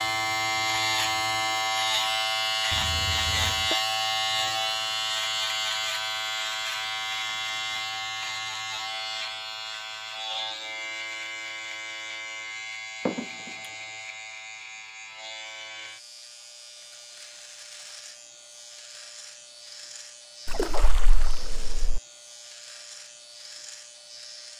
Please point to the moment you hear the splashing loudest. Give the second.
21 s.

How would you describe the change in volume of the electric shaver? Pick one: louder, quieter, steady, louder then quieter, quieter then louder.
quieter.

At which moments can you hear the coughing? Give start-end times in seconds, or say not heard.
2.7-3.8, 13.1-13.7.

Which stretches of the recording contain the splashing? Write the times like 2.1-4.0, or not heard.
20.4-22.0.